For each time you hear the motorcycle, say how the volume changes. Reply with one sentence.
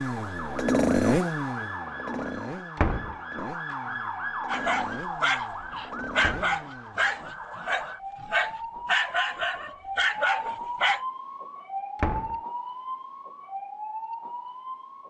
You can hear the motorcycle from 0.0 to 7.3 s, getting quieter.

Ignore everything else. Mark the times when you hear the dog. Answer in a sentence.
You can hear the dog from 4.5 to 11.1 s.